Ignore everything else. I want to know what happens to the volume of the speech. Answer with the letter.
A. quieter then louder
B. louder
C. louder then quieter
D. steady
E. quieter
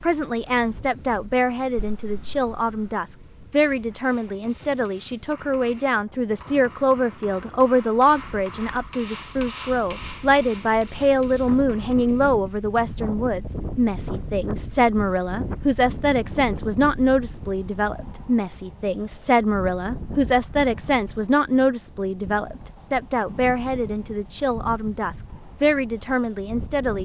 D.